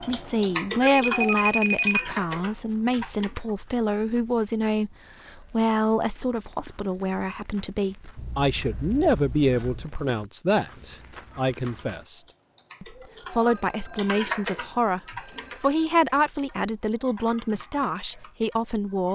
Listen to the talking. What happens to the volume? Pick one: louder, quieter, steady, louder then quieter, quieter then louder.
steady.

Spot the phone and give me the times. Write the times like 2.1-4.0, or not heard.
0.8-2.5, 8.2-9.9, 13.2-15.9.